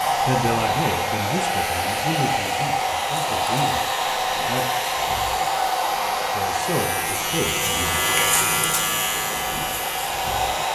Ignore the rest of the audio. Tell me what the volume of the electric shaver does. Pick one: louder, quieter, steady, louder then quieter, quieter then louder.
louder.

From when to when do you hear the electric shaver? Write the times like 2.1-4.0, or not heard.
0.0-10.6.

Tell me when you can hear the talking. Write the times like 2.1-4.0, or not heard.
0.2-4.7, 6.3-8.0.